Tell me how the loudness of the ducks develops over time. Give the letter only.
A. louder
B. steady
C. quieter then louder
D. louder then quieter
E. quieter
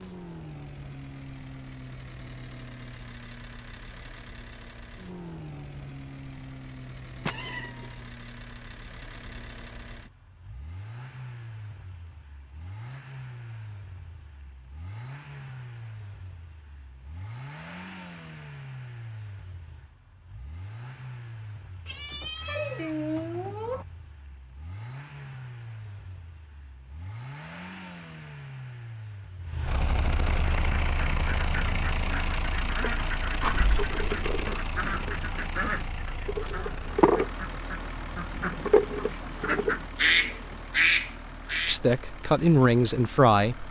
A.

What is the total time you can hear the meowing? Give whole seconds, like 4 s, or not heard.
4 s.